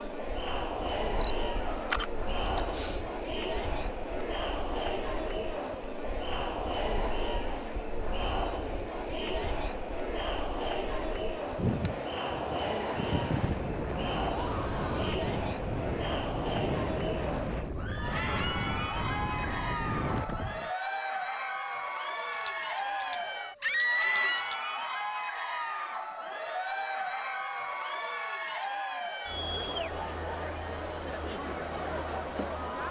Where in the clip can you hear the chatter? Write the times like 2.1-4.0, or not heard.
0.0-32.8.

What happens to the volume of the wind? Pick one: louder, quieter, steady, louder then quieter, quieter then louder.
louder.